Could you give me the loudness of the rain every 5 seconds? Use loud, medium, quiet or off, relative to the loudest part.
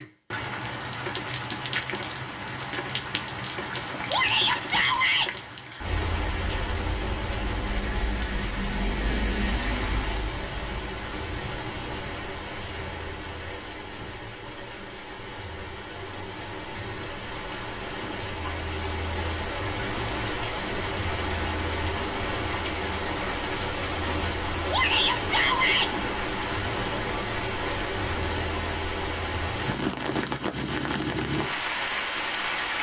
loud, loud, medium, medium, loud, loud, loud.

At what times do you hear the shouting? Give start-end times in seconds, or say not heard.
4.1-5.3, 24.7-25.9.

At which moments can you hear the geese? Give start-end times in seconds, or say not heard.
not heard.